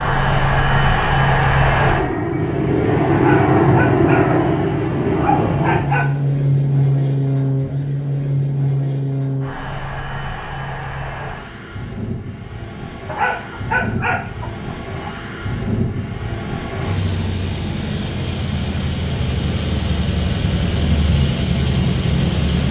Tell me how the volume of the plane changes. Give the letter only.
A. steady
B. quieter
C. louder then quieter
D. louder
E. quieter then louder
E.